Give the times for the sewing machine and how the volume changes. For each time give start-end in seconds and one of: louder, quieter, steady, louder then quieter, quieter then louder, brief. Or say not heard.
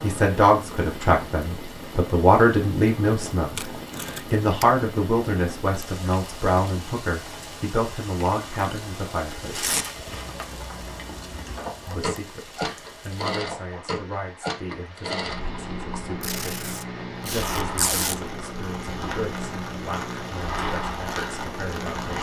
10.1-22.1 steady.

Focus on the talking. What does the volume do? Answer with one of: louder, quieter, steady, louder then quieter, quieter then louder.
quieter.